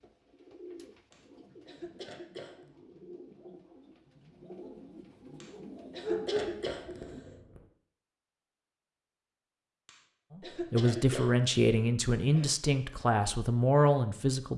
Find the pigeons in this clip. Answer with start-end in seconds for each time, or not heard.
0.0-7.2.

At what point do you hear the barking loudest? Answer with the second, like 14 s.
6 s.